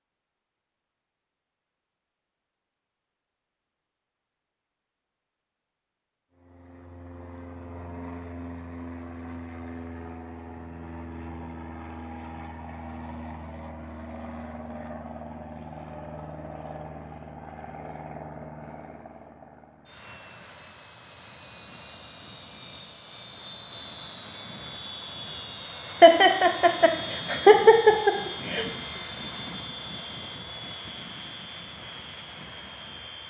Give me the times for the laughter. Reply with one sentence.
You can hear the laughter from 26.0 to 28.6 s.